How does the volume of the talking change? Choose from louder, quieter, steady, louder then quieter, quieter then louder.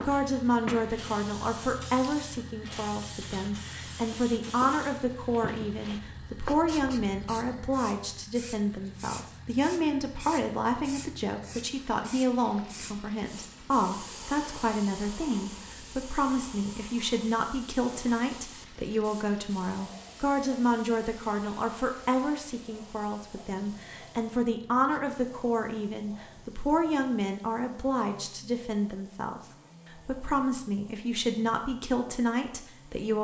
steady.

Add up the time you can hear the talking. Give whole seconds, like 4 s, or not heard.
33 s.